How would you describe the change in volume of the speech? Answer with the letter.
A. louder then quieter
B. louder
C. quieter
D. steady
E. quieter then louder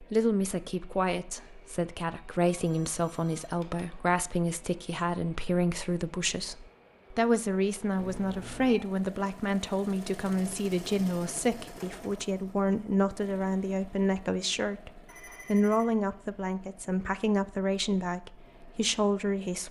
D.